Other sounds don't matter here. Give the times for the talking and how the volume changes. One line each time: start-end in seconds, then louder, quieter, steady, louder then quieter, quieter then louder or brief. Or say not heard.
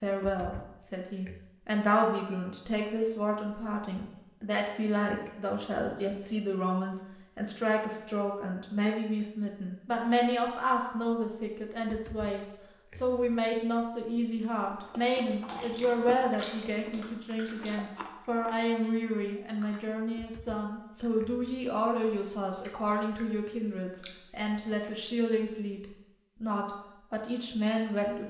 0.0-28.2 steady.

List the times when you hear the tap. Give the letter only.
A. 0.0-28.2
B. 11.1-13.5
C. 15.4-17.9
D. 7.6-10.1
C.